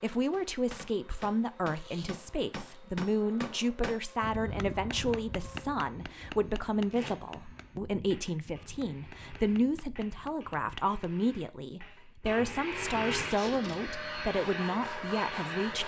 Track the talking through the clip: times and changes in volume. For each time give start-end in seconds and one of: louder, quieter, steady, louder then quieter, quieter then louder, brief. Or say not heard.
0.0-15.8 steady.